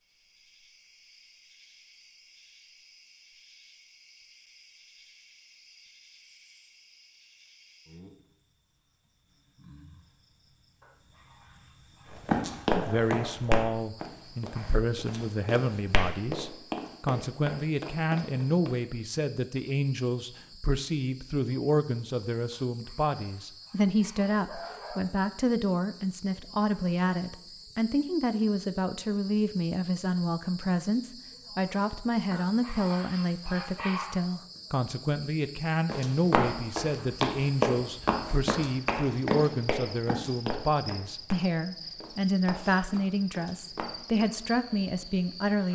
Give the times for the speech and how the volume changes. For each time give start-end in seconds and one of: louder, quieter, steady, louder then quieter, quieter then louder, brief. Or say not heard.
12.8-45.7 steady.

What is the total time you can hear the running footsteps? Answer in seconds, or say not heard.
15 s.